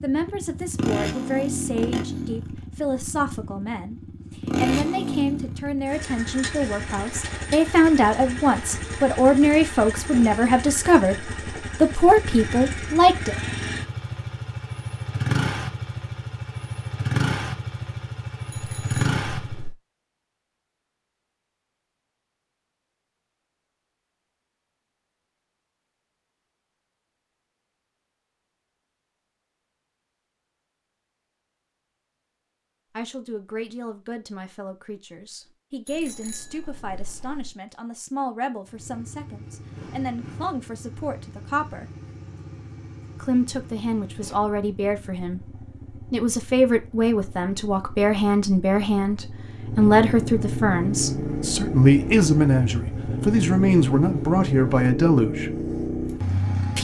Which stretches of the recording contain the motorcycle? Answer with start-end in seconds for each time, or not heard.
0.0-19.7, 38.6-56.8.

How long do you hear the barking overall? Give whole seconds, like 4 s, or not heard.
not heard.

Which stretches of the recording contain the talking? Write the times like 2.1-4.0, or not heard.
0.0-13.3, 33.0-41.9, 43.2-55.5.